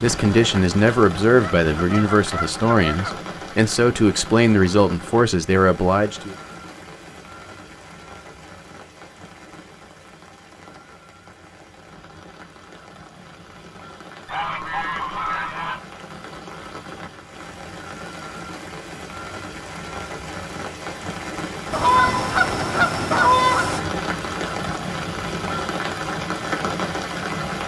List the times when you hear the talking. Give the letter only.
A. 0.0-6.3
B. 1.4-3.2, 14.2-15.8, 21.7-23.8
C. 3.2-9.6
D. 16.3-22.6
A.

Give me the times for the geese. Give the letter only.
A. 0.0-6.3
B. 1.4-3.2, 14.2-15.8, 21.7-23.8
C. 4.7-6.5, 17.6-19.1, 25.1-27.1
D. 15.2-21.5
B.